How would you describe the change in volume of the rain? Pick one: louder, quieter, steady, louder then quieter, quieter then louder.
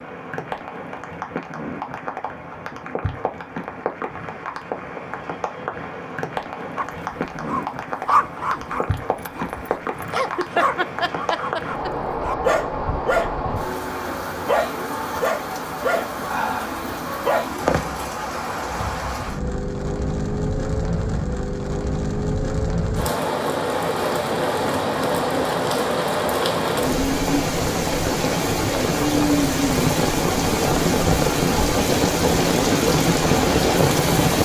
louder.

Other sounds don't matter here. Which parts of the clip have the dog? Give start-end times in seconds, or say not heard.
6.8-17.6.